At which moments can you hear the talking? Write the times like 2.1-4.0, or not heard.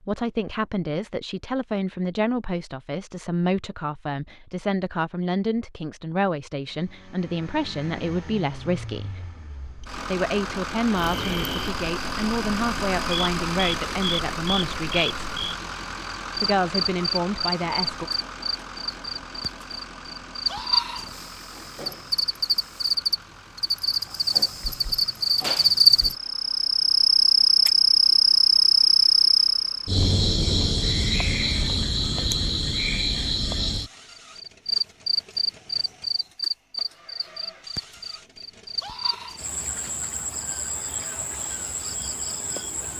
0.0-9.3, 10.0-15.3, 16.4-18.1.